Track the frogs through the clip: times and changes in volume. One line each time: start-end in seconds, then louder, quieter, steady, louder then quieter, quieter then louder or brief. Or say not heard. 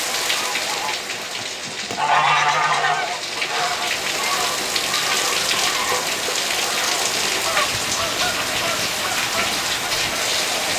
not heard.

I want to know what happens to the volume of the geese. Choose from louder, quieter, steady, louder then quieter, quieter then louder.
quieter.